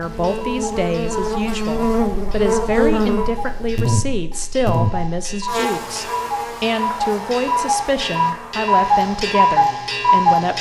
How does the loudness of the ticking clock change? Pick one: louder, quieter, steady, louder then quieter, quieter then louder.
louder.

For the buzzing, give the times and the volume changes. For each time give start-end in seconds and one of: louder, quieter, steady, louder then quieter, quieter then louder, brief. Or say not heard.
0.0-10.5 quieter.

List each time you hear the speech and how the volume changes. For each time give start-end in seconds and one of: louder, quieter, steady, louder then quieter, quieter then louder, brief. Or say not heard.
0.0-10.5 steady.